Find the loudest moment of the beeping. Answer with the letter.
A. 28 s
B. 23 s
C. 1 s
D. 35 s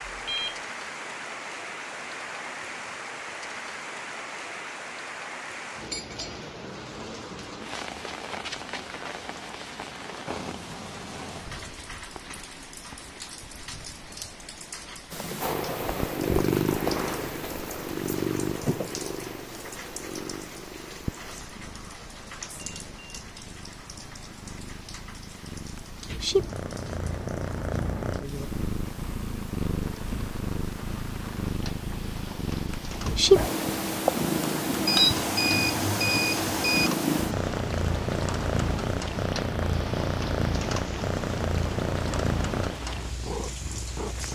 D.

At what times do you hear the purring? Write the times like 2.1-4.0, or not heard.
15.1-44.2.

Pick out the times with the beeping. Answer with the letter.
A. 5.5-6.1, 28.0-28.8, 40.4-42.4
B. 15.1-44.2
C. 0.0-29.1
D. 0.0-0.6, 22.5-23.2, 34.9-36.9
D.